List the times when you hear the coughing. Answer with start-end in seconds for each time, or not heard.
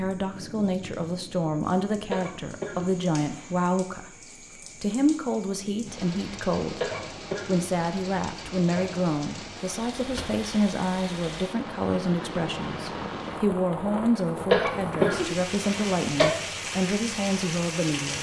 2.1-3.5, 6.8-7.7, 14.5-16.3.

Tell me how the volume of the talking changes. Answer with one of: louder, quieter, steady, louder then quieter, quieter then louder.
steady.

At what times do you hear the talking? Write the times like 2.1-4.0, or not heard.
0.0-18.1.